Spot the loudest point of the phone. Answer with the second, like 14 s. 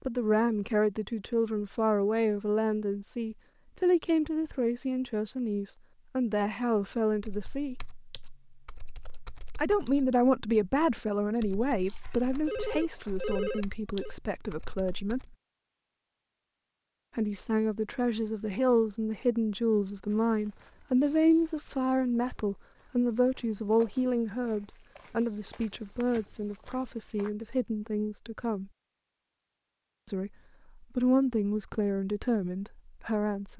13 s.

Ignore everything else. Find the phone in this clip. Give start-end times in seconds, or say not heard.
11.8-14.2.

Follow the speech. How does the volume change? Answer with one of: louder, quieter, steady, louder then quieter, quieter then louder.
steady.